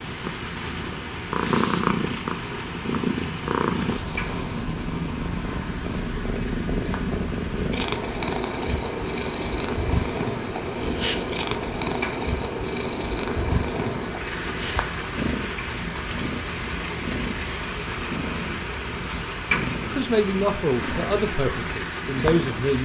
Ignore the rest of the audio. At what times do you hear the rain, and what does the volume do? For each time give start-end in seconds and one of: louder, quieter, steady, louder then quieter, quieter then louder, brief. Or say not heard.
0.0-22.7 louder.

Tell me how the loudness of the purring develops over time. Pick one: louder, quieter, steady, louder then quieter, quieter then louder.
quieter.